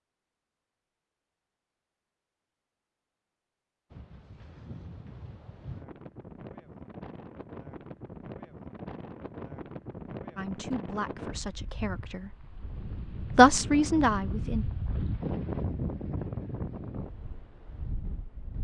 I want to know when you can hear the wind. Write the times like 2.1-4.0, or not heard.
3.9-18.5.